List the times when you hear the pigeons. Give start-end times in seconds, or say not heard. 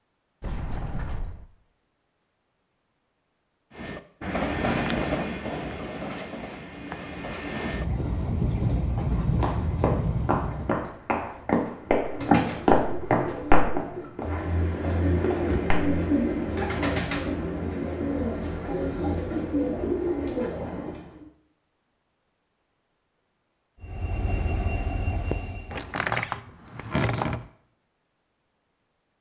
11.9-21.2.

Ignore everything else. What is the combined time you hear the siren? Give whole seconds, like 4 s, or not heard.
not heard.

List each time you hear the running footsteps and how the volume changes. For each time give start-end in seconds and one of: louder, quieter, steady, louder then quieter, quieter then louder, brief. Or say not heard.
8.9-15.9 louder then quieter.